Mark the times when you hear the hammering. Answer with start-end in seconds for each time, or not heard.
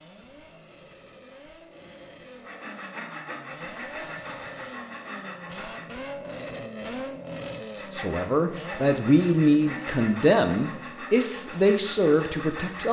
not heard.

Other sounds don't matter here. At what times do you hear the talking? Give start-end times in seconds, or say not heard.
8.0-12.8.